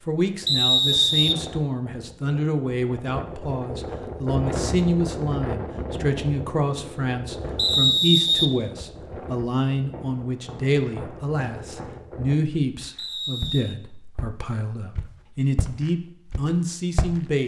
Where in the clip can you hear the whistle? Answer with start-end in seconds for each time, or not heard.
0.5-1.4, 7.5-8.5, 12.9-13.8.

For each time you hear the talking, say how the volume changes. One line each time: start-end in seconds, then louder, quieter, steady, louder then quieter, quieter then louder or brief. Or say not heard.
0.1-17.4 steady.